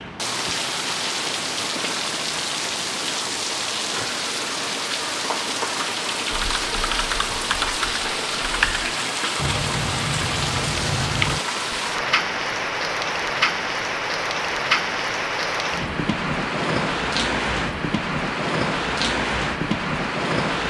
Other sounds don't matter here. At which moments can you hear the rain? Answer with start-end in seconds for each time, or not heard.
0.0-20.6.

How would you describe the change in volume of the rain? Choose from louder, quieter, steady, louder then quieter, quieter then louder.
steady.